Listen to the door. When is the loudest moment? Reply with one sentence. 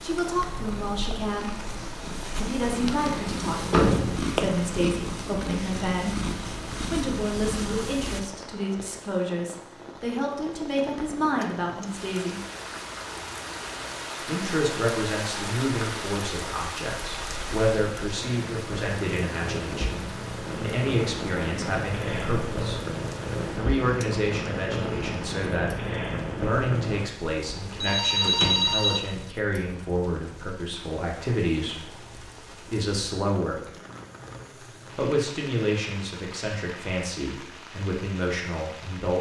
The volume of the door peaks at 4 seconds.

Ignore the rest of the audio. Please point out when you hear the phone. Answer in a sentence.
The phone can be heard from 27.4 to 29.0 s.